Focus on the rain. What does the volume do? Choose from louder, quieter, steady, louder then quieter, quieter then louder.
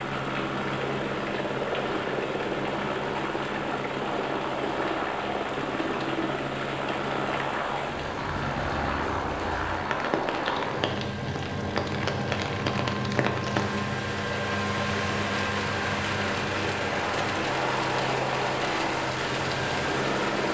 louder.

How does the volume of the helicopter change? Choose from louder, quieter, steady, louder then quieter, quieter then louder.
steady.